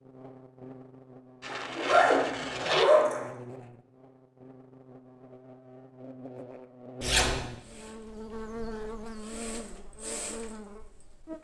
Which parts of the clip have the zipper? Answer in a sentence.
You can hear the zipper from 1.4 to 3.2 s and from 7.0 to 7.4 s.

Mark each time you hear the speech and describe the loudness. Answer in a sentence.
The speech can't be heard in this clip.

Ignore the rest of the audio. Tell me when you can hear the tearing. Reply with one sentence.
The tearing can be heard from 1.4 to 2.9 s.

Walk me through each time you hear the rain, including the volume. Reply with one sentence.
The rain can't be heard in this clip.